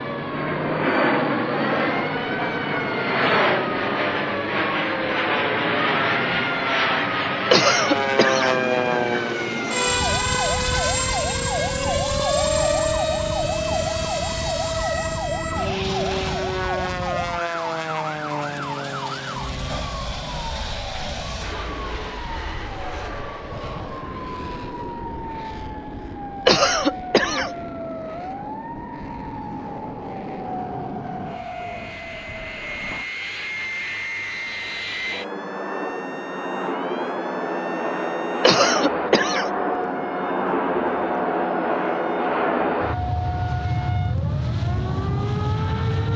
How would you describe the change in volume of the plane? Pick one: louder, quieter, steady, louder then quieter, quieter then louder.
quieter then louder.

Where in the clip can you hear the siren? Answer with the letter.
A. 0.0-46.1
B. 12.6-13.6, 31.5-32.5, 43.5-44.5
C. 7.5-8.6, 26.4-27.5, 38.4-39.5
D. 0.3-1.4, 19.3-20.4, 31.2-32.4
A.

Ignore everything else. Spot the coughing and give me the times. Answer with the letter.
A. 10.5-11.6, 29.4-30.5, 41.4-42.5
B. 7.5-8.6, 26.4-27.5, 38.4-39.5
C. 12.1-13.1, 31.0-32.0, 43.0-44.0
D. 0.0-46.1
B.